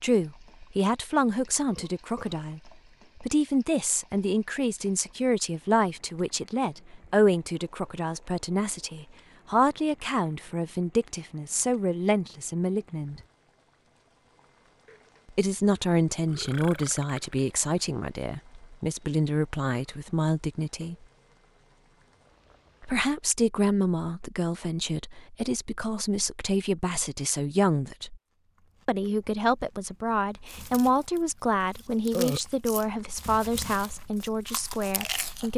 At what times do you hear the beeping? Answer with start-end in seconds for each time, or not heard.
not heard.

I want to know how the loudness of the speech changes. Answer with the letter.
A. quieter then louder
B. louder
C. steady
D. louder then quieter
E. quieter
C.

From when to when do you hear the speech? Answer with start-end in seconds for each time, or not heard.
0.0-13.2, 15.3-20.9, 22.8-28.2, 28.9-35.5.